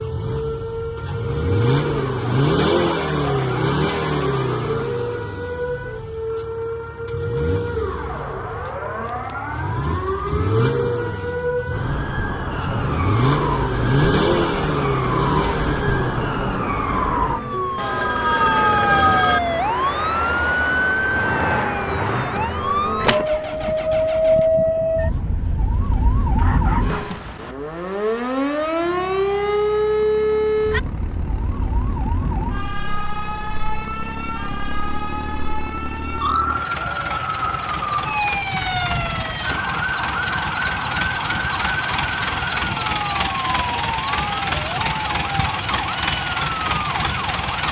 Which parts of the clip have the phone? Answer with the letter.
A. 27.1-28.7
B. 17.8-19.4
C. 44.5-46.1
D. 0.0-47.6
B.